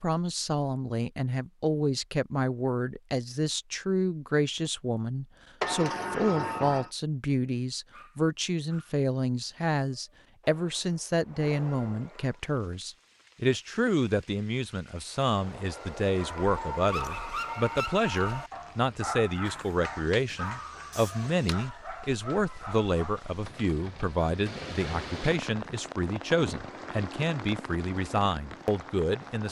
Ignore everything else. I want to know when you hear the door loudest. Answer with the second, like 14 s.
6 s.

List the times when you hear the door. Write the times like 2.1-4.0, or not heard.
5.6-6.9, 20.9-21.6.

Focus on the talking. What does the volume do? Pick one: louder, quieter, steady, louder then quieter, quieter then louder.
steady.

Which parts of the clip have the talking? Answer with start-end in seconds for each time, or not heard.
0.0-29.4.